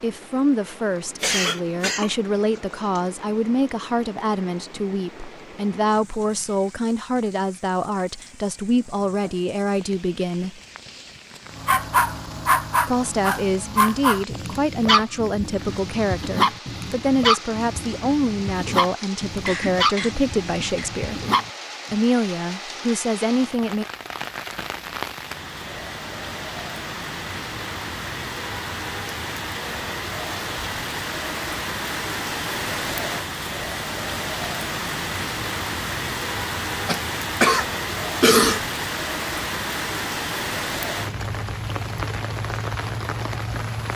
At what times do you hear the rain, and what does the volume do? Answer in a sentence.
The rain can be heard from 0.0 to 43.9 s, getting louder.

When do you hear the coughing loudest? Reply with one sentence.
The volume of the coughing peaks at 38 seconds.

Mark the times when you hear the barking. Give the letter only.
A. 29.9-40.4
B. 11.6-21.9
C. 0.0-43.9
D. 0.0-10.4
B.